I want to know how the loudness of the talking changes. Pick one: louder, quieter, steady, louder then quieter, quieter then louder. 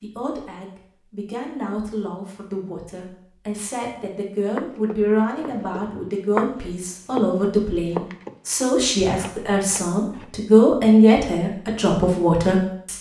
louder.